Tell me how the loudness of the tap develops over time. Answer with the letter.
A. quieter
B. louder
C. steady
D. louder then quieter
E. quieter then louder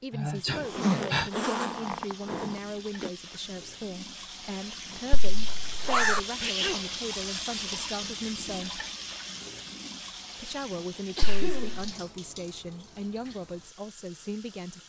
D.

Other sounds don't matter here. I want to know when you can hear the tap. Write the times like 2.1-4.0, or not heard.
0.2-14.8.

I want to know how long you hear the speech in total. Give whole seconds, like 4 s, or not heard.
13 s.